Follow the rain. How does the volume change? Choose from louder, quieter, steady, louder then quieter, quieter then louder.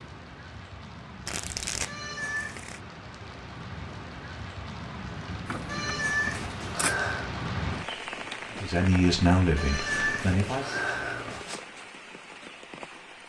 louder then quieter.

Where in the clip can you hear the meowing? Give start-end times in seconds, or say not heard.
1.9-2.6, 5.7-7.3, 9.6-11.6.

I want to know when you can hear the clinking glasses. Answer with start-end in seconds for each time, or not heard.
not heard.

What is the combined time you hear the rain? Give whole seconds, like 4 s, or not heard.
13 s.